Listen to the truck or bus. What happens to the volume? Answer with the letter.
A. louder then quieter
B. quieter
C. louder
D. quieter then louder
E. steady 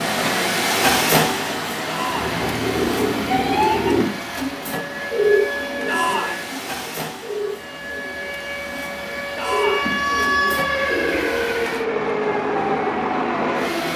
D.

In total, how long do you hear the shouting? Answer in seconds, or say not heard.
2 s.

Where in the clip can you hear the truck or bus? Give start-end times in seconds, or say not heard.
0.0-13.9.